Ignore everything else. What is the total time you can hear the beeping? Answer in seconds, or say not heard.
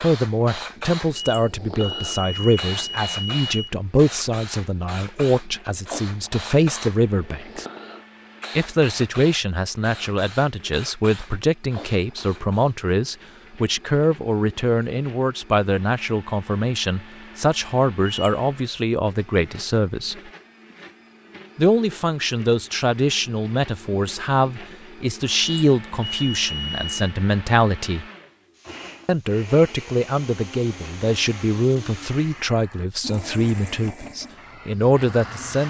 5 s.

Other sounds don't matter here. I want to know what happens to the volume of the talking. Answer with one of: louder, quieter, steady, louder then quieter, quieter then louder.
steady.